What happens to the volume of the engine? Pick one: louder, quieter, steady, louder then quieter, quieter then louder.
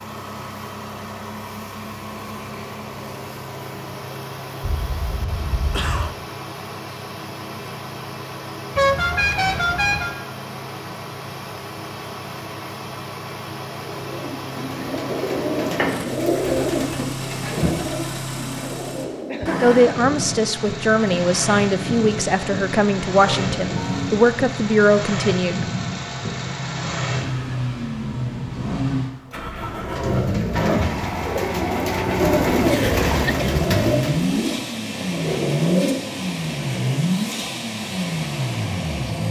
louder.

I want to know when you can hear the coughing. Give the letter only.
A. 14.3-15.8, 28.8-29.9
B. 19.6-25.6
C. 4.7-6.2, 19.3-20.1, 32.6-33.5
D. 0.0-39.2
C.